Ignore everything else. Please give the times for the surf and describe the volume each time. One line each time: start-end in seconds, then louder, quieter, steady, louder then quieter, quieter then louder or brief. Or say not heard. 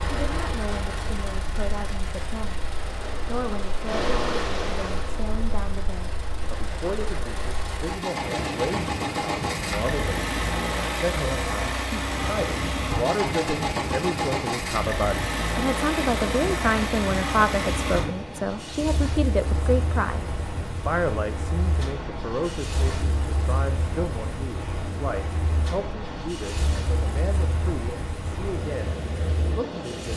0.0-30.1 steady.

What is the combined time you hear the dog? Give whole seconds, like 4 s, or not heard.
not heard.